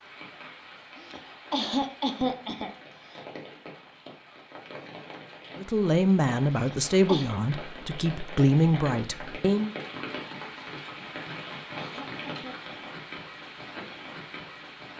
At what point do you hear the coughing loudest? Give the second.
2 s.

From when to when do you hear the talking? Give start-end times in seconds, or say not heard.
5.5-9.7.